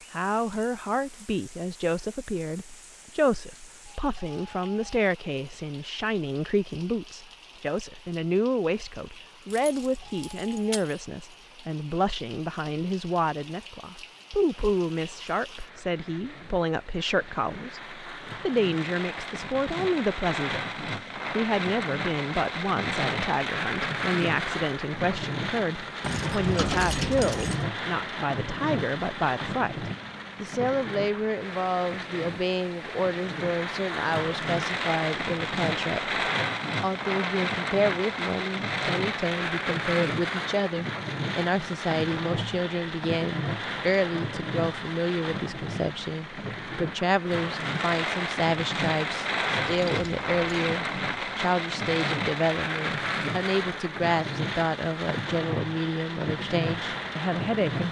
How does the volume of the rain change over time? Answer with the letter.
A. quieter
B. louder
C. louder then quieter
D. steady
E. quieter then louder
B.